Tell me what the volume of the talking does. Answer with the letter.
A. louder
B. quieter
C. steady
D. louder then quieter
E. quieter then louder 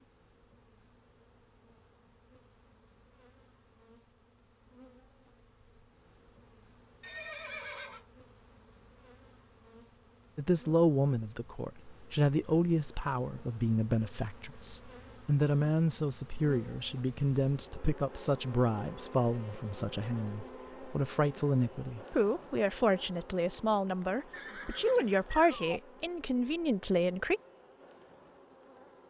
C.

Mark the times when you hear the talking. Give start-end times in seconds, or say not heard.
10.3-27.4.